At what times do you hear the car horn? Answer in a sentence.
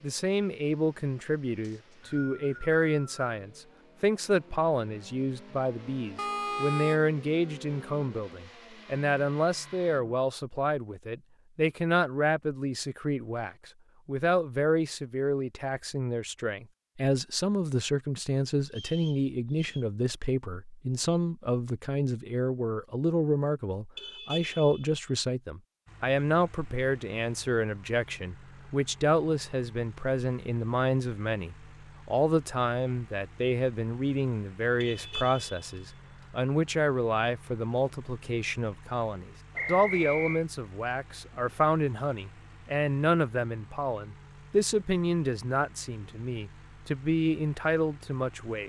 The car horn can be heard from 6.2 to 7.0 s, from 23.9 to 25.0 s and from 34.8 to 35.8 s.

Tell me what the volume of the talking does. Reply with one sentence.
The loudness of the talking stays about the same.